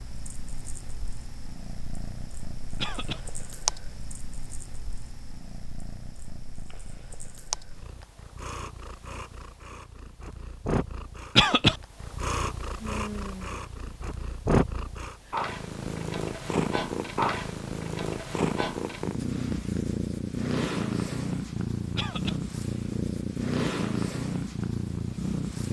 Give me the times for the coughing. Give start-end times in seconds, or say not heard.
2.8-3.2, 11.3-11.8, 21.9-22.4.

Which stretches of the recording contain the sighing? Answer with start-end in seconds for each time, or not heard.
12.8-13.7.